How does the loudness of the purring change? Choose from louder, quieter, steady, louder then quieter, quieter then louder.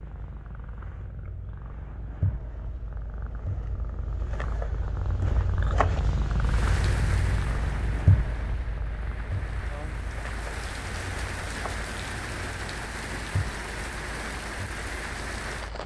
louder then quieter.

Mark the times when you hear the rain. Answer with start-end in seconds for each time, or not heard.
6.4-15.8.